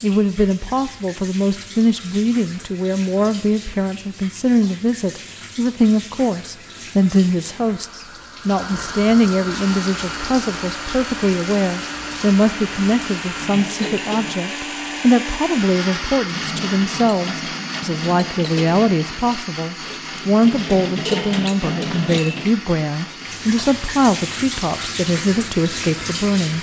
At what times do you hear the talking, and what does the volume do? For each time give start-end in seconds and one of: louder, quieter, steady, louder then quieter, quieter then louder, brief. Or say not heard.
0.0-26.5 steady.